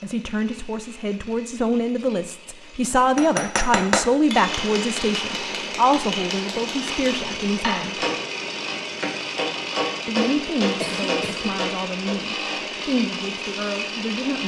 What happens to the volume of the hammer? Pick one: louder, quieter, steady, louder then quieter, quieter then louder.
quieter then louder.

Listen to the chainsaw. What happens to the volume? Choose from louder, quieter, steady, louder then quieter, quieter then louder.
louder.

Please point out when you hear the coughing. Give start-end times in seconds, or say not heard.
10.8-11.6.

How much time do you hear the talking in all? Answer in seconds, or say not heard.
12 s.